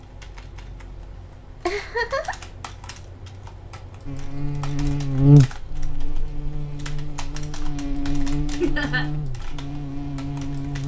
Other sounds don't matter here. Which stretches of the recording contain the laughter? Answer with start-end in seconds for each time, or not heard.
1.6-2.5, 8.6-9.1.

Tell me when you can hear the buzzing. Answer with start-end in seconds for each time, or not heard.
4.0-10.8.